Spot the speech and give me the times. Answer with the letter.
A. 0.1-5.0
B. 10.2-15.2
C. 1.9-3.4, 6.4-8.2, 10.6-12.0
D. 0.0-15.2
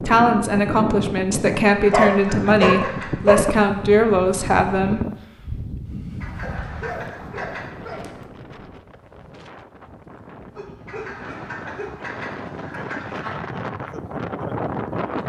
A.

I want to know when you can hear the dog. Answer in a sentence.
You can hear the dog from 1.9 to 3.4 s, from 6.4 to 8.2 s and from 10.6 to 12.0 s.